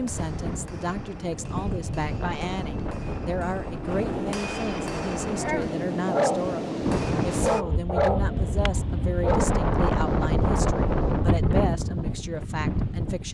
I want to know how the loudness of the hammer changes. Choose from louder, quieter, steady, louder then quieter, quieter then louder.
louder.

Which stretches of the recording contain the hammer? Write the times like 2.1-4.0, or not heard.
0.0-7.7.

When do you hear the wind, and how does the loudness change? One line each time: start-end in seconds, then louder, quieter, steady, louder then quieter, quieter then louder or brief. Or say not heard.
0.0-13.2 louder.